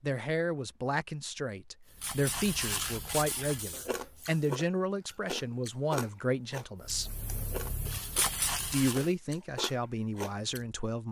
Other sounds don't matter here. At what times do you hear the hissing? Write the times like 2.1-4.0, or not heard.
1.9-4.6, 6.8-9.1.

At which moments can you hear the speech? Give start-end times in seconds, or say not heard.
0.0-7.2, 8.6-11.0.